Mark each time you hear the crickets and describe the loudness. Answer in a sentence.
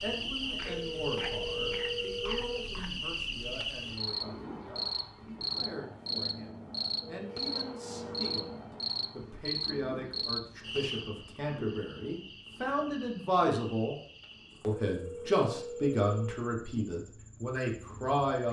The crickets can be heard from 0.0 to 18.2 s, getting quieter.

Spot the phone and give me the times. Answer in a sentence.
You can hear the phone from 0.7 to 2.7 s, from 7.0 to 8.6 s and from 14.9 to 16.4 s.